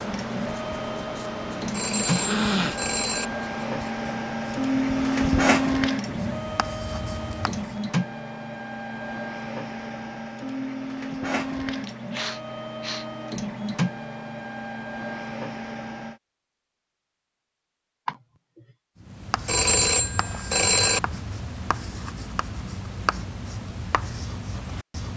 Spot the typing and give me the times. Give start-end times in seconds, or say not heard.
not heard.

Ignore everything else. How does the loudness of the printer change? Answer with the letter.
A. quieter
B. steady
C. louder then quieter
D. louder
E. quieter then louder
C.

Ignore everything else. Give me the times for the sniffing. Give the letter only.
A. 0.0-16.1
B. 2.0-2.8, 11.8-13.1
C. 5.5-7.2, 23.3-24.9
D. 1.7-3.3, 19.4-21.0
B.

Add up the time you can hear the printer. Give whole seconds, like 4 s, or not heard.
16 s.